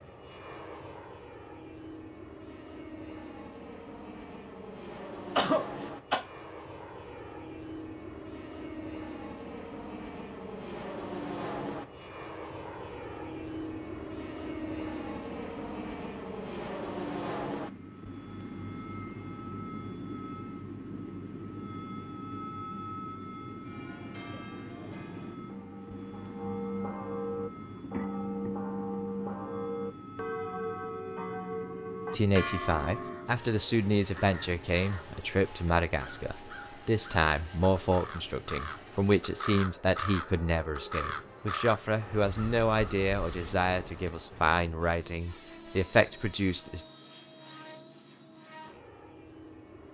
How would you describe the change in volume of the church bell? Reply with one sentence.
The loudness of the church bell goes up.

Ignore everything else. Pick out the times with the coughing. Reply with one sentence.
You can hear the coughing from 5.3 to 6.2 s and from 27.8 to 28.5 s.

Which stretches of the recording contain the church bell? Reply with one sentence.
You can hear the church bell from 23.6 to 33.4 s.